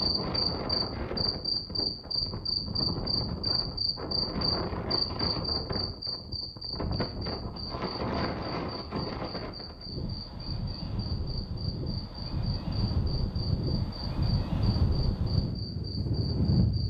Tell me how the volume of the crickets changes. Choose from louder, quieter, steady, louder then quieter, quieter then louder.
quieter.